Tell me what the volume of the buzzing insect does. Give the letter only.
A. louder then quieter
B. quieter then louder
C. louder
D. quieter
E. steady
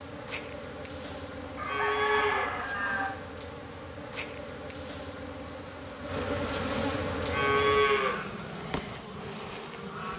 A.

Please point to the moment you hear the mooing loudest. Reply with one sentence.
The volume of the mooing peaks at 8 seconds.